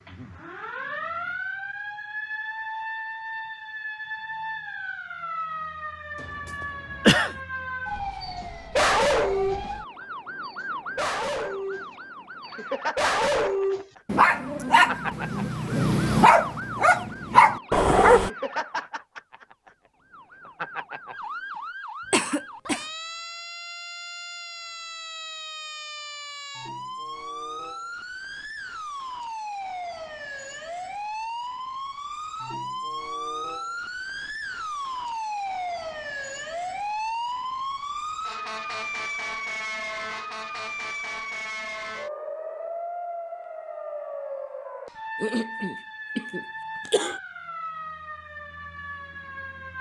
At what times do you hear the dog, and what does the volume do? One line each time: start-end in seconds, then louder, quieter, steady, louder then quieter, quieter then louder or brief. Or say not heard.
8.2-9.7 brief
10.4-18.3 louder.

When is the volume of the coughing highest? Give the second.
7 s.